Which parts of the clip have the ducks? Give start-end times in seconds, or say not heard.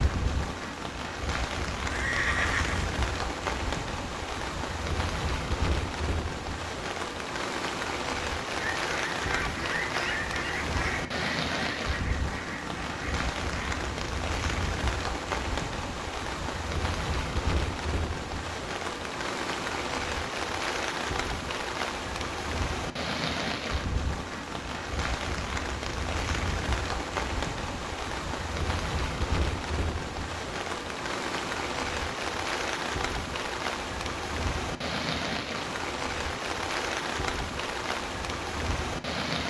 8.4-13.8.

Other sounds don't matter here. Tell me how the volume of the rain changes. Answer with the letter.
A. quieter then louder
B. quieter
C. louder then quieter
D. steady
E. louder
D.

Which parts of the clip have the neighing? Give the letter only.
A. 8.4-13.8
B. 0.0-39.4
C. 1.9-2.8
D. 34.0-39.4
C.